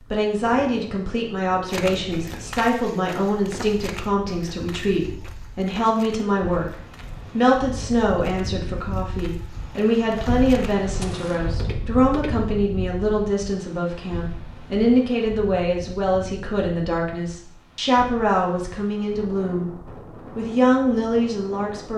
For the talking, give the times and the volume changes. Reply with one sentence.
You can hear the talking from 0.1 to 21.9 s, at a steady volume.